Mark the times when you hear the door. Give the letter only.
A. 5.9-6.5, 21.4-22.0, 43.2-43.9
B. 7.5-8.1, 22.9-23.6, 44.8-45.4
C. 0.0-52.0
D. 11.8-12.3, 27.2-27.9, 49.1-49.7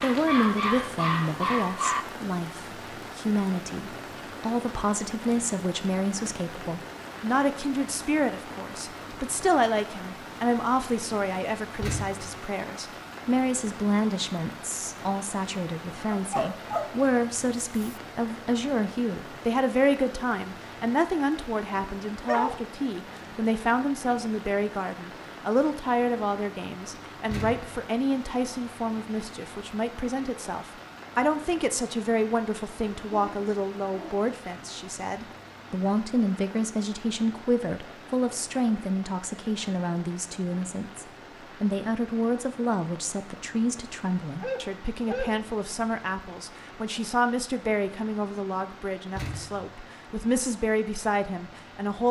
D.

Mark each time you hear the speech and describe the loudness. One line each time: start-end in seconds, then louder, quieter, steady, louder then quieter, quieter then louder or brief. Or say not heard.
0.0-52.0 steady.